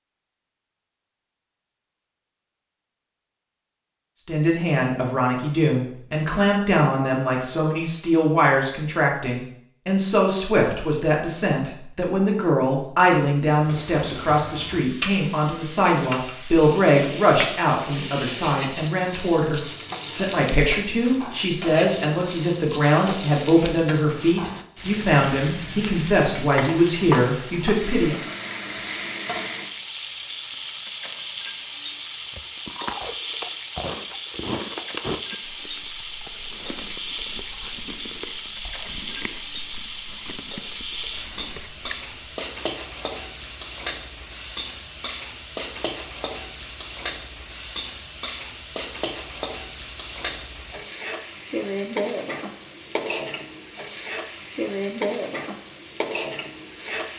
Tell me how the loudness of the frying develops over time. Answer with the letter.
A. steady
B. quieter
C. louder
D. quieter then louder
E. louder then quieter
A.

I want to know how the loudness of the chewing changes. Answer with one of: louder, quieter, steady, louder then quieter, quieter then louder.
quieter.